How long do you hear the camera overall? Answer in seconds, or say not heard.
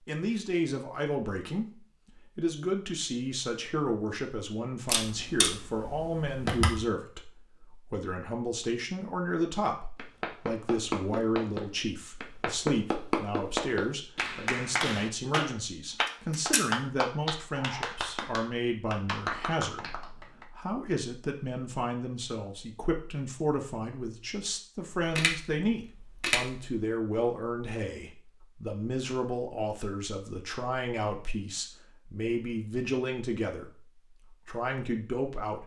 4 s.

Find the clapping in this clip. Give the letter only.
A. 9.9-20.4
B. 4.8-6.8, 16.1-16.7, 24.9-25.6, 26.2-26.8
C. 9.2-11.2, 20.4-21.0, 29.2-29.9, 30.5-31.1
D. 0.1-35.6
A.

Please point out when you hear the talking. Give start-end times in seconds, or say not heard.
0.1-35.6.